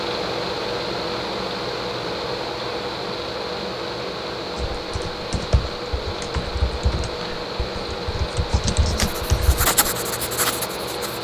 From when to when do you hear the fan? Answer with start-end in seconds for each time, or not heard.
0.0-11.1.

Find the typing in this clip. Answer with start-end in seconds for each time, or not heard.
4.5-9.7.